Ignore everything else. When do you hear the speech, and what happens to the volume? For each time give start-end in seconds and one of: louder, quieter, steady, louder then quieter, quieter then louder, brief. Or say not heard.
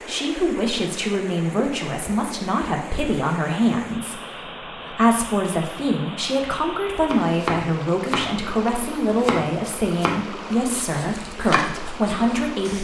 0.1-12.7 steady.